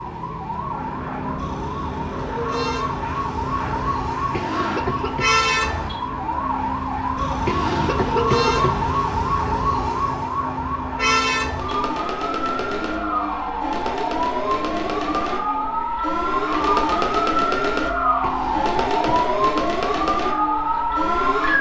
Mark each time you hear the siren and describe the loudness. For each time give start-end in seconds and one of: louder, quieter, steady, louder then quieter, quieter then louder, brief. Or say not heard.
0.0-21.5 louder.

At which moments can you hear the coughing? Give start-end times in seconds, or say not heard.
4.3-5.2, 7.5-8.9, 18.2-19.4.